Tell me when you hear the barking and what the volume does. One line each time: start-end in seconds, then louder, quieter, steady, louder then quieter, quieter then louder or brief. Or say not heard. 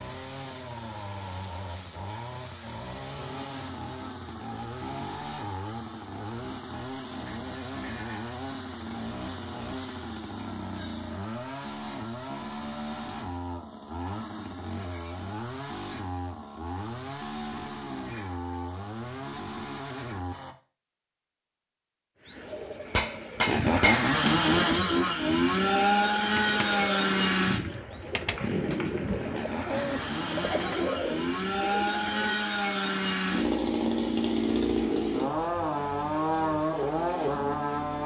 not heard.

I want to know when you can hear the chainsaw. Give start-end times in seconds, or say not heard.
0.0-20.6, 23.4-38.0.